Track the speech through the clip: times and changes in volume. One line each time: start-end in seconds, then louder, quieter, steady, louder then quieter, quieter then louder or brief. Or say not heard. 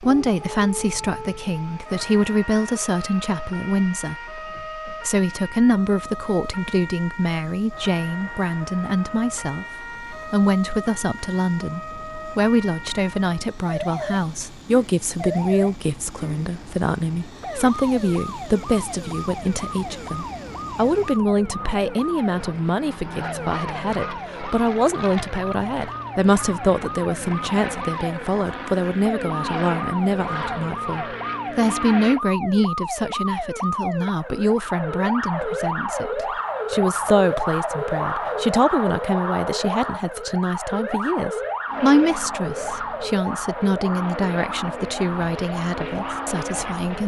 0.0-47.0 steady.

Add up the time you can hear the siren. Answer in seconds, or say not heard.
47 s.